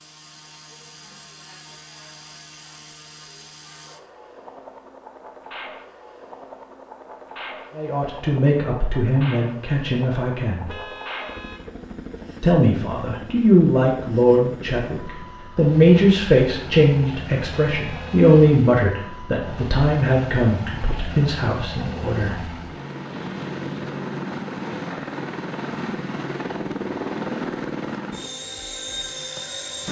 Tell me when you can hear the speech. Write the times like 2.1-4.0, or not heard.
7.8-10.8, 12.4-22.4.